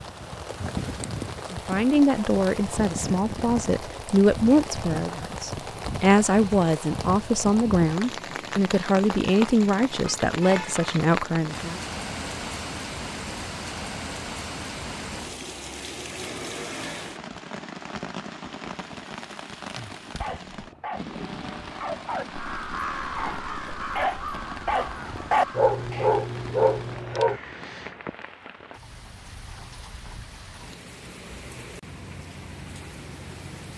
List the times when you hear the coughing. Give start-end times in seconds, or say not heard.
not heard.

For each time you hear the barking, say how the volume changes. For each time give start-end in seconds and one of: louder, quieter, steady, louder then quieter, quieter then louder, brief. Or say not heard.
20.0-27.4 louder.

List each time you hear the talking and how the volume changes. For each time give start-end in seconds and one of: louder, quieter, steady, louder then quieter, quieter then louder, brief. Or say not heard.
1.5-11.8 steady.